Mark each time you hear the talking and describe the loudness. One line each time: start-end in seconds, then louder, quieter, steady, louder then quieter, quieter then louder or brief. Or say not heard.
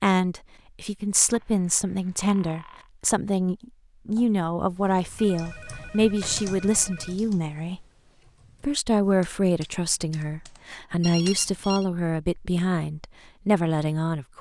0.0-7.8 steady
8.6-14.3 quieter then louder.